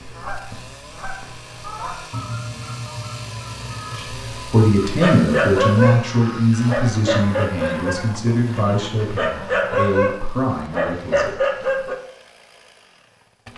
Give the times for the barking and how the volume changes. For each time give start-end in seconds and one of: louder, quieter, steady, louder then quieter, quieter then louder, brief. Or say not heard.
4.8-11.9 quieter then louder.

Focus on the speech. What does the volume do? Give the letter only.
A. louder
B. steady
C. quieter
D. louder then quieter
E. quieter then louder
C.